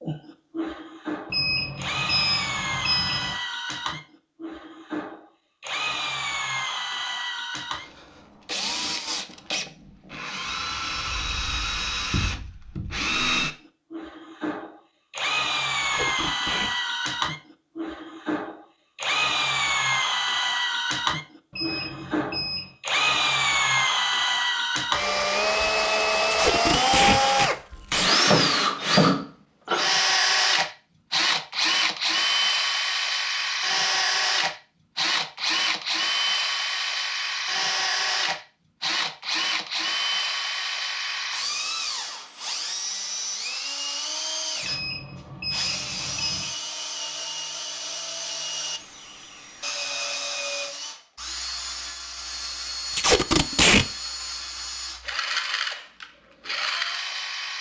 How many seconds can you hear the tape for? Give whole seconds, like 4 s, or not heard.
4 s.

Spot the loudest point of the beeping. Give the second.
2 s.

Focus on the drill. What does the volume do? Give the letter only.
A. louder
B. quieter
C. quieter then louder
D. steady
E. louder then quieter
E.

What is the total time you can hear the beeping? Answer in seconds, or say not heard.
5 s.